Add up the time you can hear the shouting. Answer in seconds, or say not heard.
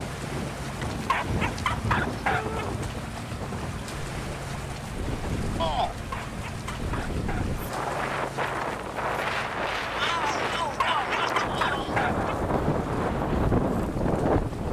3 s.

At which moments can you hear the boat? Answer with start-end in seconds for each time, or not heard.
0.0-14.6.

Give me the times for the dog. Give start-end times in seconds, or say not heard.
0.8-2.6, 6.0-7.7, 10.6-12.3.